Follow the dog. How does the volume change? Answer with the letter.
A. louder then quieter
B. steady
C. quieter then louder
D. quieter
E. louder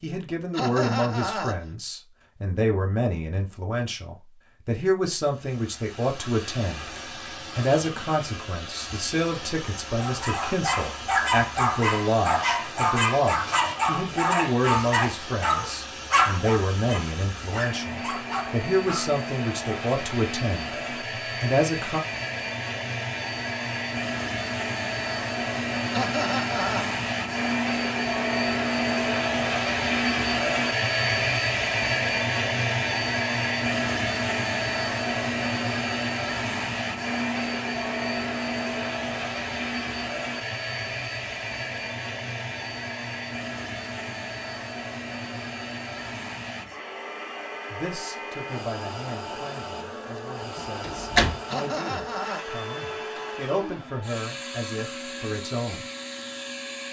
D.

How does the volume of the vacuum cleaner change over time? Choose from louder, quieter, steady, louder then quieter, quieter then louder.
louder then quieter.